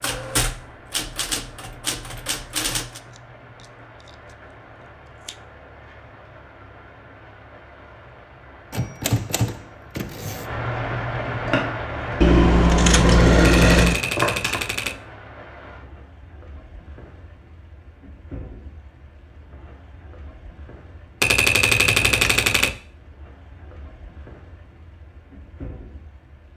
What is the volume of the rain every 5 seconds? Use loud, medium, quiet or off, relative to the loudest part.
quiet, quiet, loud, quiet, quiet, quiet.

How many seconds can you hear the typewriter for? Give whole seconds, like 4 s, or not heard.
8 s.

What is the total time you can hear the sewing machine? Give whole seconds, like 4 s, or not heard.
3 s.